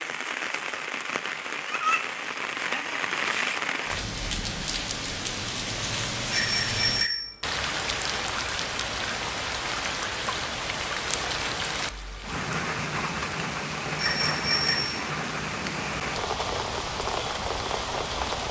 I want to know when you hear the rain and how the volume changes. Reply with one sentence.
You can hear the rain from 0.0 to 18.4 s, at a steady volume.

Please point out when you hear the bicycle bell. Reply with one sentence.
You can hear the bicycle bell from 6.3 to 7.3 s and from 13.9 to 15.0 s.